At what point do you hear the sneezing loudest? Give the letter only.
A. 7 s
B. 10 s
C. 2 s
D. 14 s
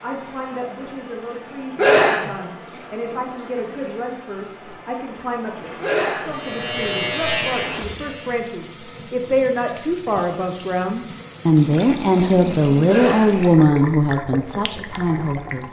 C.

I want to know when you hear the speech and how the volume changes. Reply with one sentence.
The speech can be heard from 0.0 to 15.6 s, getting louder.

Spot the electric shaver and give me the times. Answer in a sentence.
The electric shaver can be heard from 6.3 to 8.4 s.